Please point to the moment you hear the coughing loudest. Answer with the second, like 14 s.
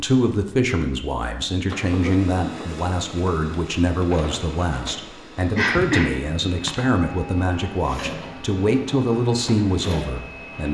6 s.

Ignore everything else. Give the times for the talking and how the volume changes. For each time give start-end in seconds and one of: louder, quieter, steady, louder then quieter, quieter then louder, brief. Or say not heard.
0.0-10.6 steady.